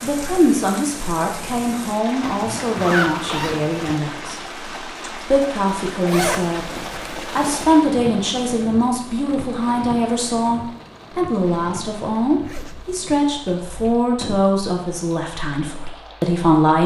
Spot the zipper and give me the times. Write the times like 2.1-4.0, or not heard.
2.2-4.0, 6.0-7.7, 12.4-14.1.